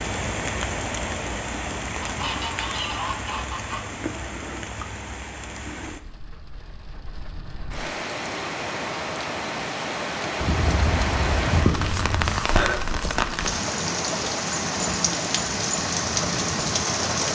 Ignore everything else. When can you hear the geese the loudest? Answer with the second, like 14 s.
12 s.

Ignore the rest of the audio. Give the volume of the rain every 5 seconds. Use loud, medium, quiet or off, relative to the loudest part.
medium, medium, loud, loud.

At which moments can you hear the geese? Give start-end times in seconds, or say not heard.
2.0-3.9, 10.4-12.4.